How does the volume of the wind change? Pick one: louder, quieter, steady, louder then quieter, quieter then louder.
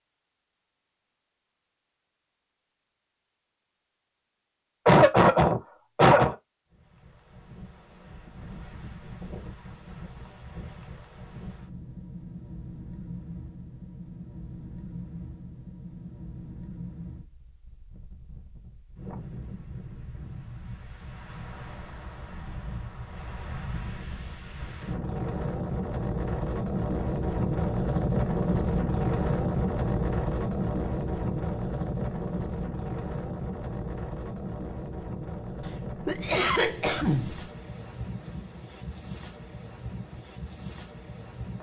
louder then quieter.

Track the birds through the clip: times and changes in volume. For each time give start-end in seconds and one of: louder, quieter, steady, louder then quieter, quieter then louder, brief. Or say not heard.
not heard.